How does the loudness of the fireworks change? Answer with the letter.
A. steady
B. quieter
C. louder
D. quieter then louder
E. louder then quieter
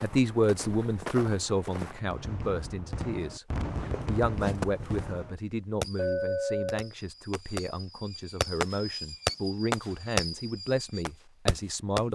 D.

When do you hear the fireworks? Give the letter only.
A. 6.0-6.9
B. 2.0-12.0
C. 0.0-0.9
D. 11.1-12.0
B.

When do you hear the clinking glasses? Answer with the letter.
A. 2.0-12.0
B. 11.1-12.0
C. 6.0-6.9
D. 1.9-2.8
C.